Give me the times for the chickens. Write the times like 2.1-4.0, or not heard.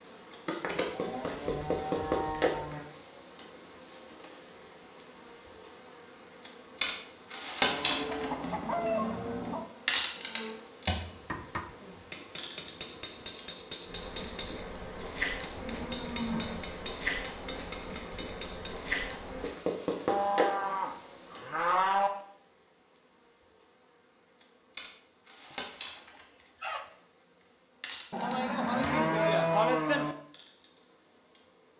7.8-9.7, 25.5-26.9.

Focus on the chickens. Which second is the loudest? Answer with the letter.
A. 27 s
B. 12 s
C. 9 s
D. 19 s
C.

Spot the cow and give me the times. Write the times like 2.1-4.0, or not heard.
0.9-2.8, 7.7-9.7, 15.6-16.6, 20.1-22.1, 28.1-30.1.